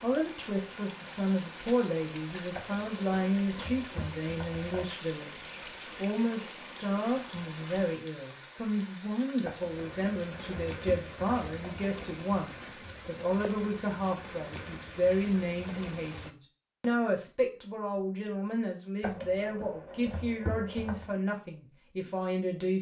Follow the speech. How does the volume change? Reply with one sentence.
The volume of the speech stays about the same.